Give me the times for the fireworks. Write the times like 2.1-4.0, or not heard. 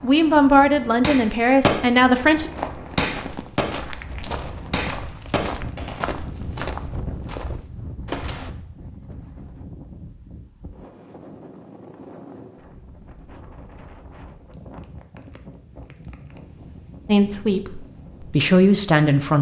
0.0-6.2.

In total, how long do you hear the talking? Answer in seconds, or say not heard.
5 s.